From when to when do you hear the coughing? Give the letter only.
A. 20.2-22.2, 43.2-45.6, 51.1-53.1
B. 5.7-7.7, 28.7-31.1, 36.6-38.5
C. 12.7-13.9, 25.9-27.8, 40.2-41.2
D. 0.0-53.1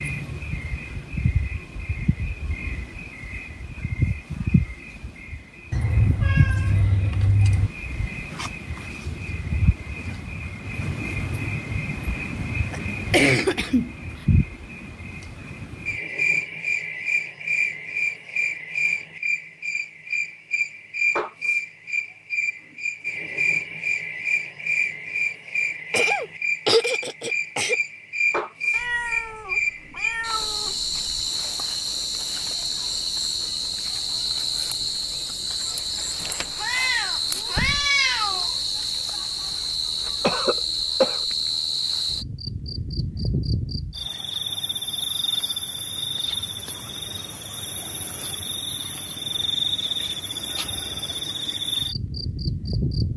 C.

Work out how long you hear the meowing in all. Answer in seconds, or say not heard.
6 s.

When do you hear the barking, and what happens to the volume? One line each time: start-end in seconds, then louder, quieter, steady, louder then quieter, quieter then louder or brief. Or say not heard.
not heard.